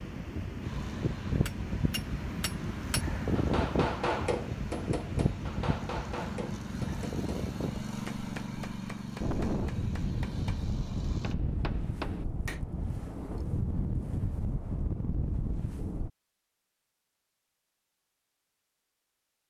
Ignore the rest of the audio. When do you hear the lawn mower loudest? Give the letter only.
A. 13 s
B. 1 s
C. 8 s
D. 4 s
C.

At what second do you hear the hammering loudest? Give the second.
4 s.